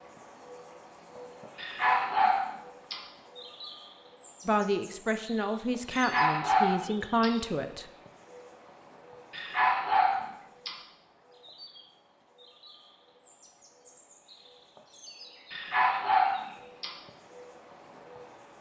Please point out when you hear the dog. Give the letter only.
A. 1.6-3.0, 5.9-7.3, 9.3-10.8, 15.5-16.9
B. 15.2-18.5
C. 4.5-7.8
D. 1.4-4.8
A.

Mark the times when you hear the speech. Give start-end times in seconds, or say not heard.
4.5-7.8.